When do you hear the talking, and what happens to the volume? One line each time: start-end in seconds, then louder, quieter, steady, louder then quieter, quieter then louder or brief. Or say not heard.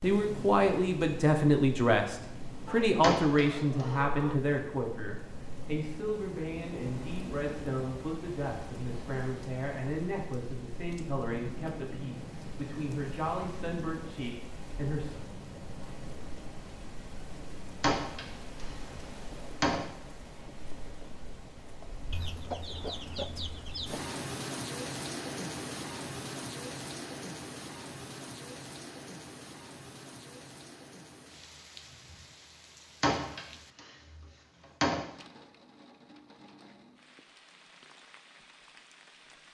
0.0-15.2 quieter.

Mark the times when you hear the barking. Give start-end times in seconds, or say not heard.
not heard.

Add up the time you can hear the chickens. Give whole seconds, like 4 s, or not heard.
4 s.